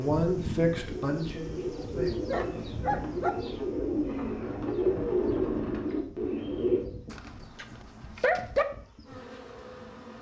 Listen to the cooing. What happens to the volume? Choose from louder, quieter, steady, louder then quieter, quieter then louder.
louder.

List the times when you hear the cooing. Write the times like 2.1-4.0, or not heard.
0.1-6.8.